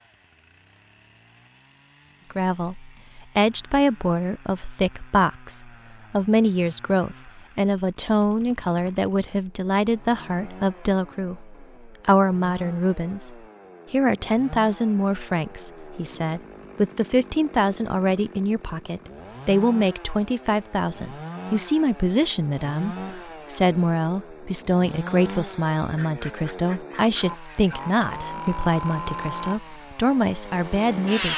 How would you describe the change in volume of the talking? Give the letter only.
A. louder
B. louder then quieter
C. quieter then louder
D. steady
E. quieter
D.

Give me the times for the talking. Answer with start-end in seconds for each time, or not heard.
2.3-31.3.